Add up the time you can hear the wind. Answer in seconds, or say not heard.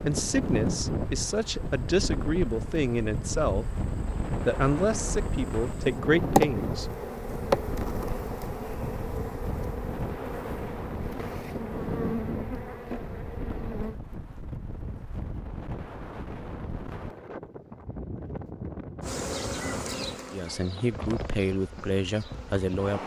23 s.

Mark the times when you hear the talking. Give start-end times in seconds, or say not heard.
0.0-7.0, 20.3-23.0.